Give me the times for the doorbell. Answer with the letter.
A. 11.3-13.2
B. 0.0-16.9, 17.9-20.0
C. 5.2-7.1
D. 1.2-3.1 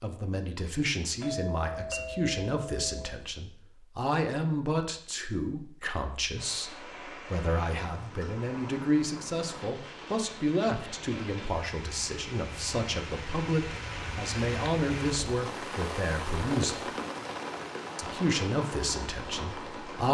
D.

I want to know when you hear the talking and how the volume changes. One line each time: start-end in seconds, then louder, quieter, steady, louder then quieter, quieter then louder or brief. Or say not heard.
0.0-16.9 steady
17.9-20.0 brief.